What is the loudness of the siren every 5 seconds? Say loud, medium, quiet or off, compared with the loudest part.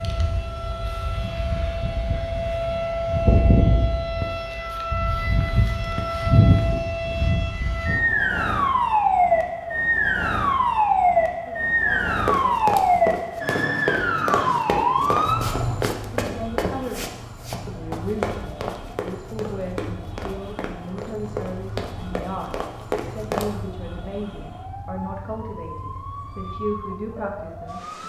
medium, loud, loud, medium, quiet, quiet.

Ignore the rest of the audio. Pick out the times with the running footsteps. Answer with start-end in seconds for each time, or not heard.
12.2-23.4.